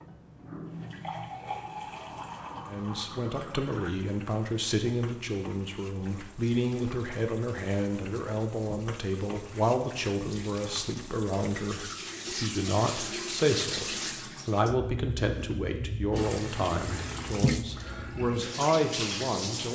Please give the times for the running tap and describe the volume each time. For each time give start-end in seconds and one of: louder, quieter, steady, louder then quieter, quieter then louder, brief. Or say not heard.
0.0-19.6 quieter then louder.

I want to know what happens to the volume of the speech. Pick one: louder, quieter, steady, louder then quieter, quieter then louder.
steady.